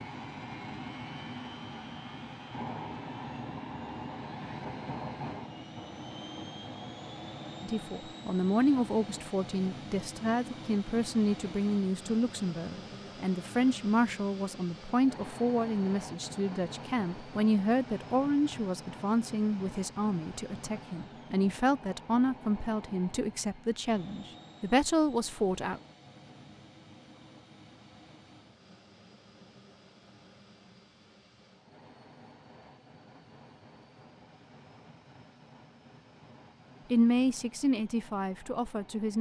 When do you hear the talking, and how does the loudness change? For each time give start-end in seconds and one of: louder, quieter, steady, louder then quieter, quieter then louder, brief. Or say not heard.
7.6-25.8 steady
36.9-39.1 brief.